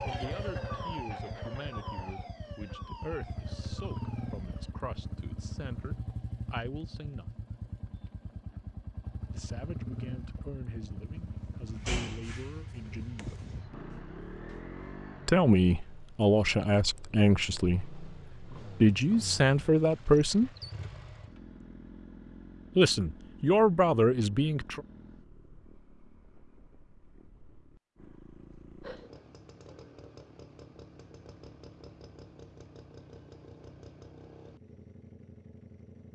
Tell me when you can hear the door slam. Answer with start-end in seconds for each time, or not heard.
11.2-13.6.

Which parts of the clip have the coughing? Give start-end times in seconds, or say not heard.
not heard.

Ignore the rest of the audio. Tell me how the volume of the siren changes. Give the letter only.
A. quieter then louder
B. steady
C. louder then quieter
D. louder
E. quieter
E.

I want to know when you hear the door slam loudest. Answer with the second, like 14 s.
12 s.